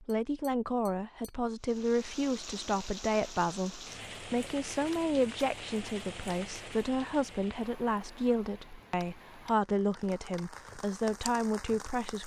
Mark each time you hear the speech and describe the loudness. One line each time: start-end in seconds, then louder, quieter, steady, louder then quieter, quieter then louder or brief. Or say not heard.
0.0-12.2 steady.